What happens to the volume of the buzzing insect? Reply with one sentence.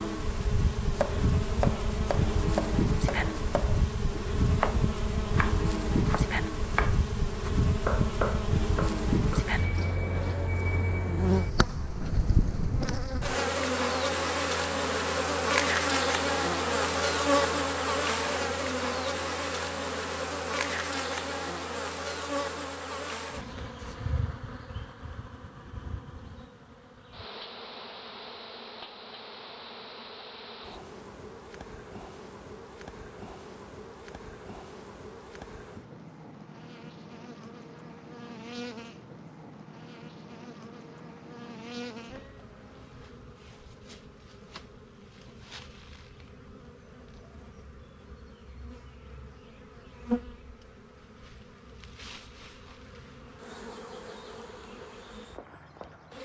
The volume of the buzzing insect goes down.